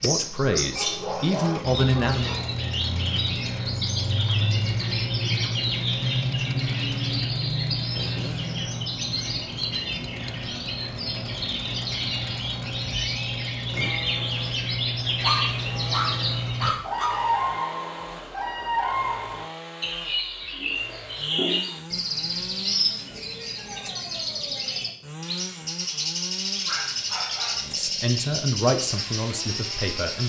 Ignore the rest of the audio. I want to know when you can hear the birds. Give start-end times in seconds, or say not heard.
0.0-30.2.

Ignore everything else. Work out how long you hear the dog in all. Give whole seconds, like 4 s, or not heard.
5 s.